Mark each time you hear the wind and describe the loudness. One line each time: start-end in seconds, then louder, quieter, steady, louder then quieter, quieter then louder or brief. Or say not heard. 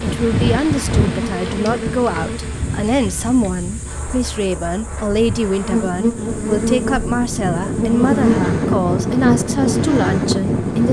0.0-10.8 quieter then louder.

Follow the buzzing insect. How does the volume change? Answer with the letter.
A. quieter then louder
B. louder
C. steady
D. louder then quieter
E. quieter
A.